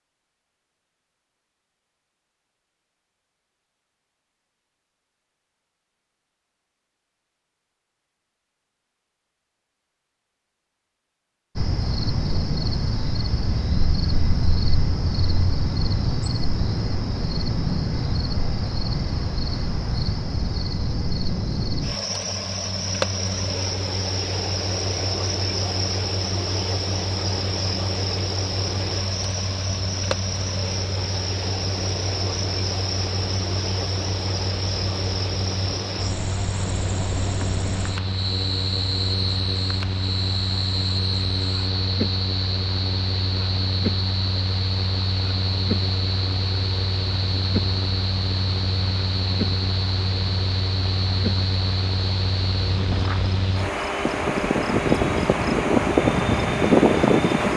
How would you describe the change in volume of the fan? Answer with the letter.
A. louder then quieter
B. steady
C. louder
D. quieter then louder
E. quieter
C.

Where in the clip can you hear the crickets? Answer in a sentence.
You can hear the crickets from 11.6 to 57.5 s.